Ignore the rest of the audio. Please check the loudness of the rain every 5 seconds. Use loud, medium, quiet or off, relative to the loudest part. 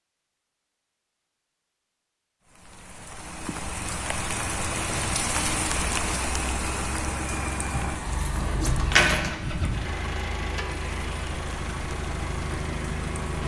loud, loud, medium.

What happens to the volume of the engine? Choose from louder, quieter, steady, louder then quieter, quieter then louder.
steady.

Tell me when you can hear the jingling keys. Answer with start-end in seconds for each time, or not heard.
8.0-9.3.